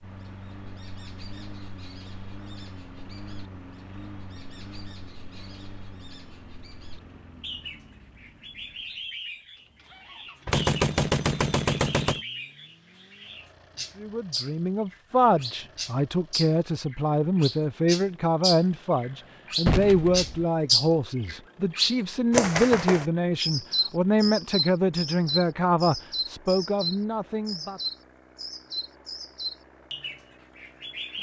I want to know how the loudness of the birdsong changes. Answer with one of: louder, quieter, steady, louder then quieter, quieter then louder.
louder then quieter.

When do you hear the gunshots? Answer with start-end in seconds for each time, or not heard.
10.4-12.2, 19.6-20.4.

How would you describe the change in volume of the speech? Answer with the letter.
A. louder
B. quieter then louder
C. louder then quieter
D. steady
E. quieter
D.